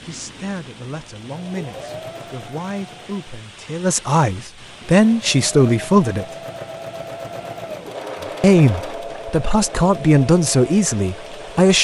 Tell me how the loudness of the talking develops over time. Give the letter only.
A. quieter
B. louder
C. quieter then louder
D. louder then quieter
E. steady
B.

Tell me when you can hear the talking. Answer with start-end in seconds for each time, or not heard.
0.0-6.2, 8.4-11.7.